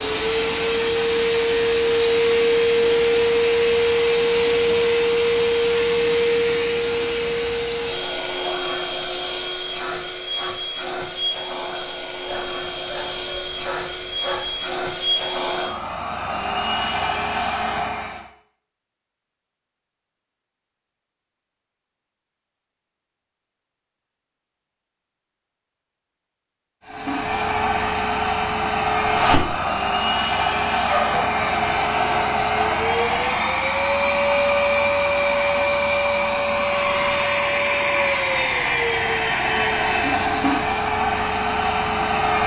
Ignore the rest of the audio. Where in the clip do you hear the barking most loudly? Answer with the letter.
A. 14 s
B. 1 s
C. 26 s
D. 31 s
D.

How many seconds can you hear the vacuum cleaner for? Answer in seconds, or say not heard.
34 s.